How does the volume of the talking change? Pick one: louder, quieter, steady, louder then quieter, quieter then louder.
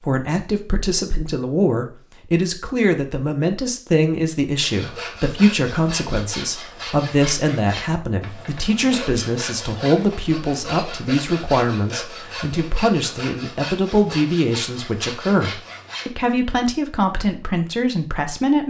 steady.